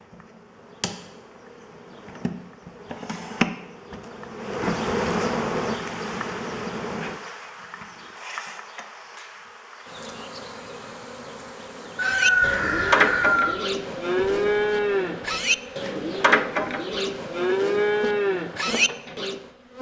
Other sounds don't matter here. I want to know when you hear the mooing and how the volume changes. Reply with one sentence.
You can hear the mooing from 12.0 to 19.4 s, at a steady volume.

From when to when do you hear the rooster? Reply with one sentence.
You can hear the rooster from 11.9 to 13.6 s.